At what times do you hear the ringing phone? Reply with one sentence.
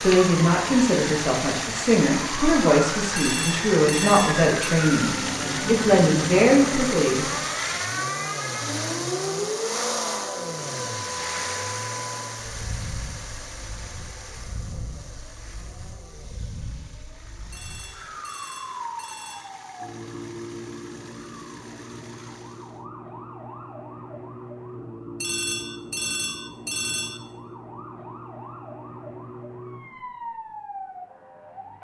You can hear the ringing phone from 3.1 to 4.5 s, from 17.5 to 19.5 s and from 25.2 to 27.2 s.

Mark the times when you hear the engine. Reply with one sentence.
You can hear the engine from 0.0 to 22.9 s.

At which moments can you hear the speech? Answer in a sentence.
You can hear the speech from 0.0 to 7.5 s.